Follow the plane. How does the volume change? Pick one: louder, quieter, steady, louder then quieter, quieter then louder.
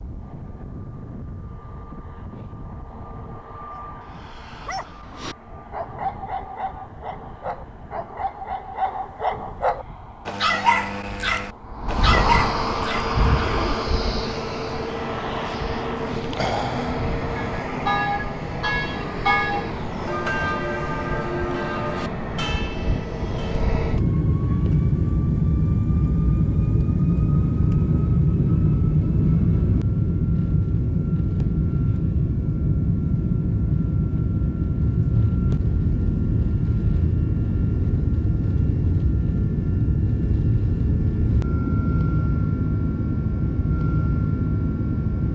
louder.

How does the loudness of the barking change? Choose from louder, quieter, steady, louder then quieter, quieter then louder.
louder.